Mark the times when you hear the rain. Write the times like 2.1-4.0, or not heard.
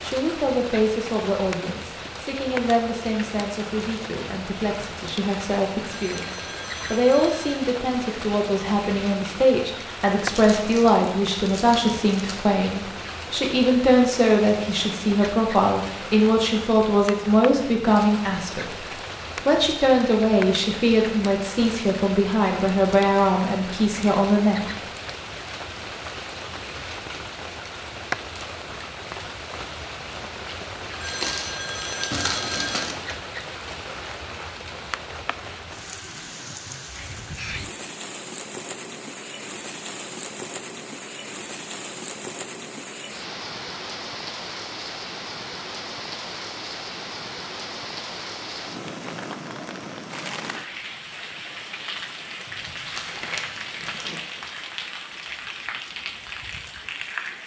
0.0-57.4.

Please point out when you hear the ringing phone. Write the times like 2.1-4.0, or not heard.
5.8-7.5, 30.9-32.9.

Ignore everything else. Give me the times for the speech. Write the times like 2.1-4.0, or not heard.
0.0-18.9, 19.4-24.8.